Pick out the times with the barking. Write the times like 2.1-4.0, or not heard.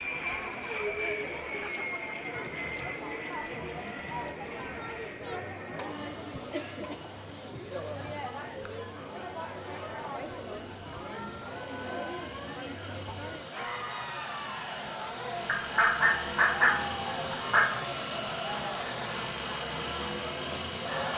not heard.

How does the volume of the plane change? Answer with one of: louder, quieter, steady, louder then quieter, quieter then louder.
quieter then louder.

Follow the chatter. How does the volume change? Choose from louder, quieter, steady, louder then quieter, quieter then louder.
steady.